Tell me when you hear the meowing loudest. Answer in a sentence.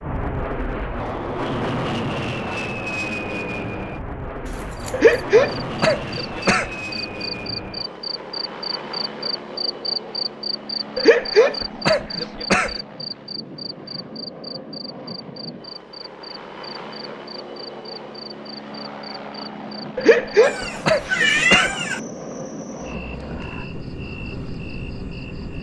The loudest moment of the meowing is at 21 seconds.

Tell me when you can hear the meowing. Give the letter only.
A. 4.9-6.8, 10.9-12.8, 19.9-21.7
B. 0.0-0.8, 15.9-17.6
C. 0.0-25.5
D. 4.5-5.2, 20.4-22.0
D.